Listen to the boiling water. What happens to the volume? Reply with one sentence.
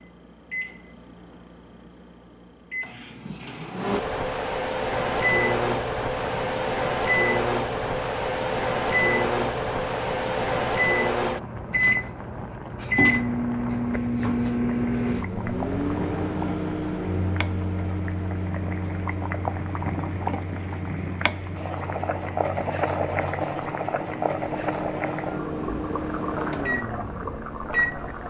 The loudness of the boiling water goes up.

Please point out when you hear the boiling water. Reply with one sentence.
The boiling water can be heard from 5.0 to 28.2 s.